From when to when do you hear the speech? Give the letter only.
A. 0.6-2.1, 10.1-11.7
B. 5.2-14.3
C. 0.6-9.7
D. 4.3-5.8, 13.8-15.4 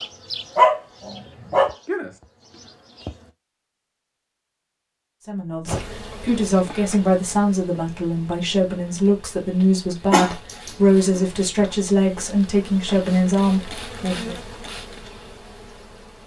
B.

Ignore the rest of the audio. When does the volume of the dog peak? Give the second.
1 s.